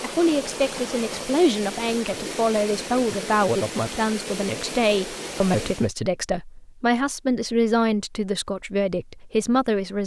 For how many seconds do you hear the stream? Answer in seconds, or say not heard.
6 s.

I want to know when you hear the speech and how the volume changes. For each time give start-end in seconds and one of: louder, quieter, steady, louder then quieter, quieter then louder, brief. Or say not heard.
0.0-10.0 steady.